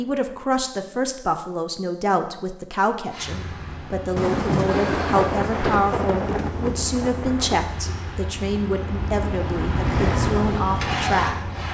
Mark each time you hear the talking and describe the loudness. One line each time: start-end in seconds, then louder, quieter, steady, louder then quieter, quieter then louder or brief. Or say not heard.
0.0-11.3 steady.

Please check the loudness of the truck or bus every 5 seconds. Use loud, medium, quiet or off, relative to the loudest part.
medium, medium, loud.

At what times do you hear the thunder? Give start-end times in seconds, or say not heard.
4.2-7.7.